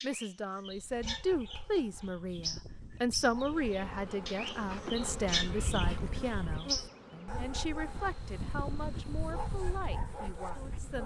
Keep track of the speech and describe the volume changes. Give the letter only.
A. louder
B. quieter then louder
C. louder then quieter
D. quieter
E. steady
D.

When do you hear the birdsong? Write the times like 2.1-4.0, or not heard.
0.0-6.9.